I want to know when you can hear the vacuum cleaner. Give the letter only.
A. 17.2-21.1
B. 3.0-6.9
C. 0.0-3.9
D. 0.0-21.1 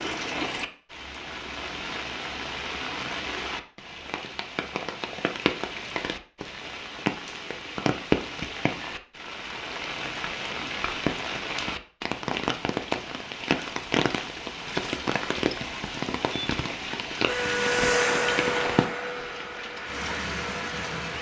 A.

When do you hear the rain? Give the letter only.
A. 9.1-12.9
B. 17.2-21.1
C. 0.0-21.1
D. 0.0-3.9
C.